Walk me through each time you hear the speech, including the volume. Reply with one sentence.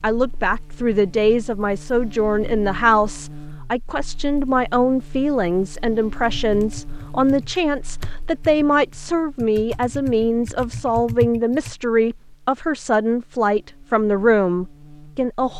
You can hear the speech from 0.0 to 15.5 s, at a steady volume.